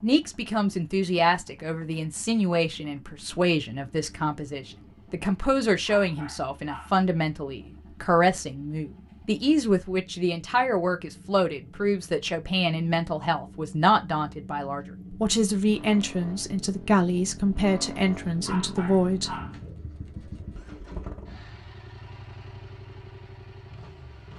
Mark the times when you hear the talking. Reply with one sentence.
You can hear the talking from 0.0 to 19.4 s.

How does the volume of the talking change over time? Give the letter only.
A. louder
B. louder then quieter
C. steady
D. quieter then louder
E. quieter
C.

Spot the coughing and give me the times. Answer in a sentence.
You can't hear the coughing here.